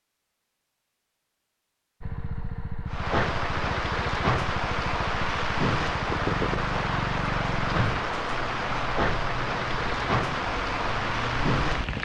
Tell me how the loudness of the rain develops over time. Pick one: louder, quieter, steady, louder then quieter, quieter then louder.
steady.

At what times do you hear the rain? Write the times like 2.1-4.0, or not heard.
2.9-11.9.